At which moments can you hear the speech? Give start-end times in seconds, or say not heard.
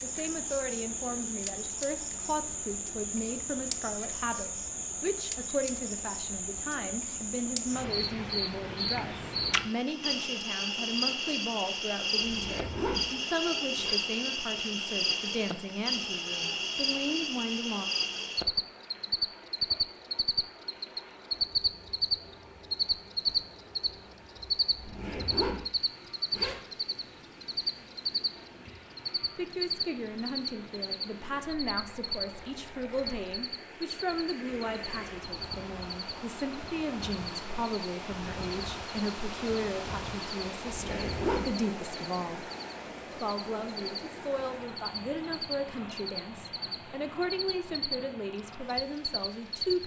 0.0-17.9, 29.4-42.5, 43.1-49.8.